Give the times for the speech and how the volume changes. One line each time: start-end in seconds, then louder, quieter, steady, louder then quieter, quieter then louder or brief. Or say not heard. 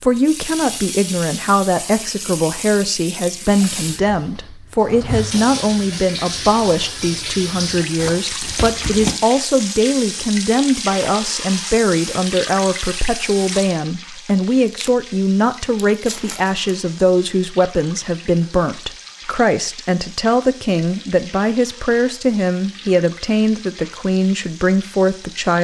0.0-25.5 steady.